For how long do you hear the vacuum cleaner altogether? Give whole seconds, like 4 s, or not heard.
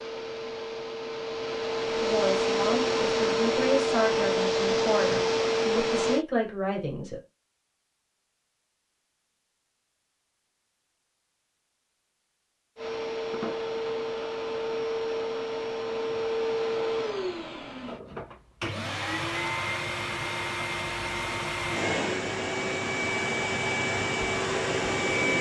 19 s.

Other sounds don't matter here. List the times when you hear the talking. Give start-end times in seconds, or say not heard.
1.9-7.2.